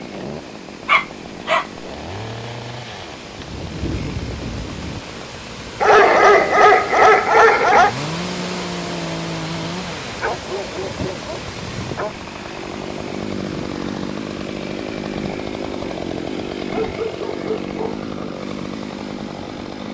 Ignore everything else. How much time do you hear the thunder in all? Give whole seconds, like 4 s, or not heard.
2 s.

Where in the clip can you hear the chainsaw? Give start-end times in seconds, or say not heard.
0.0-19.8.